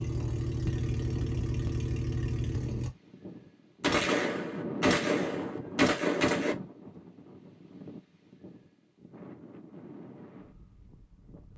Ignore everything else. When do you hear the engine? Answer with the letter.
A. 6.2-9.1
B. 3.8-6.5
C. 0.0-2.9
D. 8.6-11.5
C.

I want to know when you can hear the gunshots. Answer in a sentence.
You can hear the gunshots from 3.8 to 6.5 s.